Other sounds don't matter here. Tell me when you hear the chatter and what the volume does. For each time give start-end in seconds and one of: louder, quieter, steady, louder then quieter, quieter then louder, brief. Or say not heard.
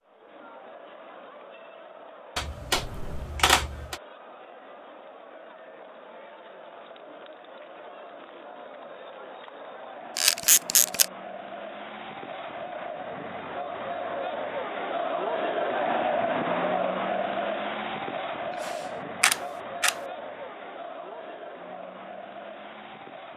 0.0-23.3 louder then quieter.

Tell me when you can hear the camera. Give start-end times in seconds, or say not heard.
2.4-4.0, 10.2-11.1, 18.6-19.9.